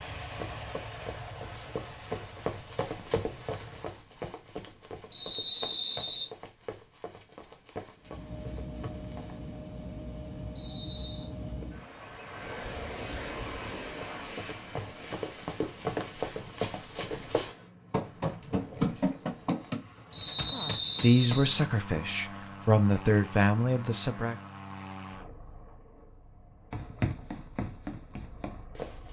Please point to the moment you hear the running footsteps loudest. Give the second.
19 s.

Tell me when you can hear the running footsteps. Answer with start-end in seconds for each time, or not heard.
0.1-9.6, 13.4-21.6, 26.7-29.0.